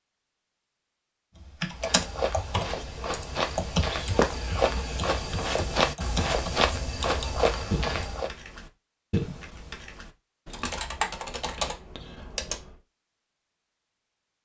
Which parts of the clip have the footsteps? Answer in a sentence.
The footsteps can be heard from 1.7 to 8.3 s.